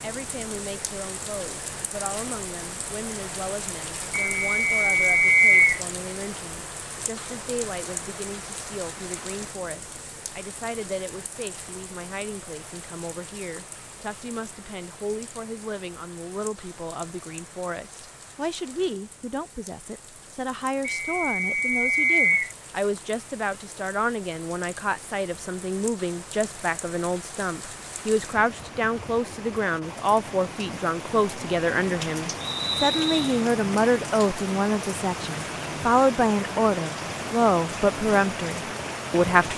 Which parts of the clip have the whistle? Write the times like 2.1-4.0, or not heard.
4.1-5.8, 20.8-22.5, 32.4-33.4.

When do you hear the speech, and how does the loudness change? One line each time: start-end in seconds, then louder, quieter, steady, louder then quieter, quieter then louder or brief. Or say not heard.
0.0-39.5 louder.